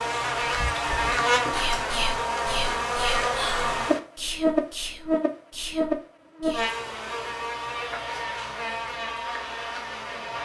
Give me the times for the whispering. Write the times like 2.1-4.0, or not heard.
0.5-6.7.